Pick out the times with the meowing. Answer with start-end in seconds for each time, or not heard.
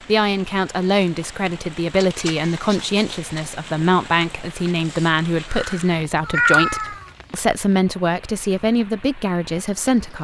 2.0-3.5, 5.5-7.0.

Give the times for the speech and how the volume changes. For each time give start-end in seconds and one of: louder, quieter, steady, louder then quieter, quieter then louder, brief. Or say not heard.
0.1-10.1 steady.